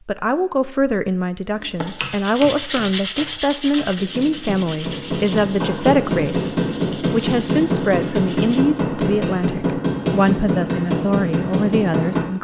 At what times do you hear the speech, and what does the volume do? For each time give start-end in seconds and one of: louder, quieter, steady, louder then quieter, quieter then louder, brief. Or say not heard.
0.1-12.3 steady.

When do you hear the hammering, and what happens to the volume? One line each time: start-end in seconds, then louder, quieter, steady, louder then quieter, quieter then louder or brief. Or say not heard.
1.6-12.3 louder.